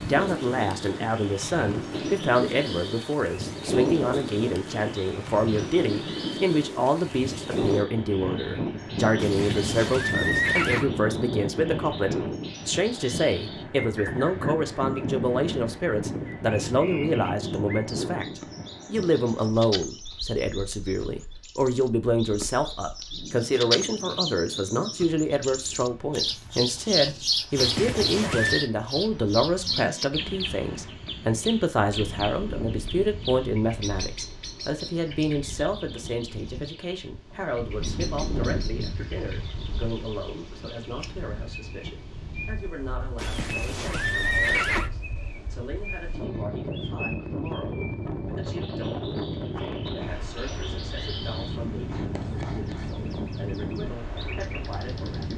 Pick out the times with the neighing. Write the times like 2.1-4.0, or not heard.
9.2-10.9, 27.6-28.7, 43.1-44.9.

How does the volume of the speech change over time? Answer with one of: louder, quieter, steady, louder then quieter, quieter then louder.
quieter.